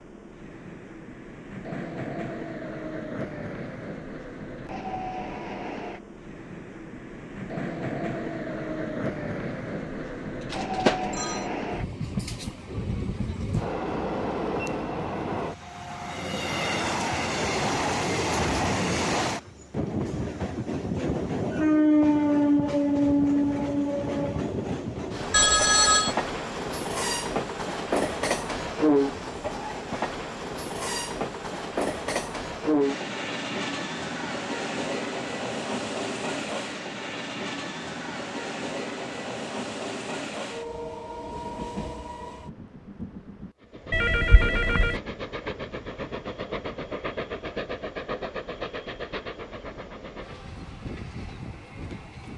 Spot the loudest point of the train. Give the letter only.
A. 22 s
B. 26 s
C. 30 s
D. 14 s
A.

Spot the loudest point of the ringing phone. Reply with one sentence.
The volume of the ringing phone peaks at 26 seconds.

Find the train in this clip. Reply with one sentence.
You can hear the train from 0.0 to 52.3 s.